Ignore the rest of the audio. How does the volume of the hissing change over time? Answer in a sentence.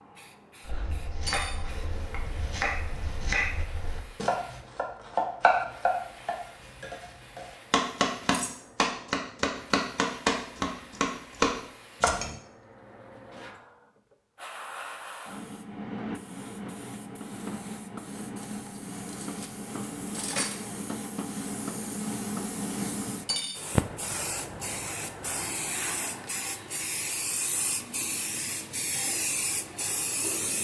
The volume of the hissing goes up.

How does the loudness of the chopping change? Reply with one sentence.
The loudness of the chopping goes up.